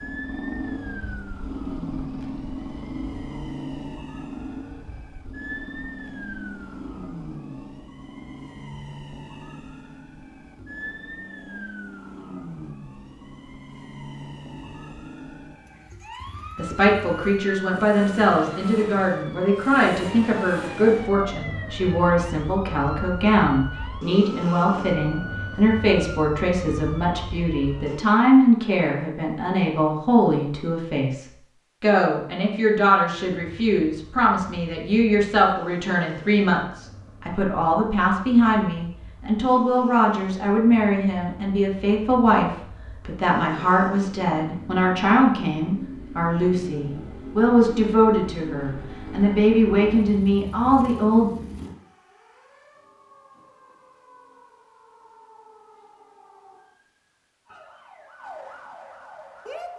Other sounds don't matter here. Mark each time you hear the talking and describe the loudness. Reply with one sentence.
The talking can be heard from 16.6 to 51.3 s, at a steady volume.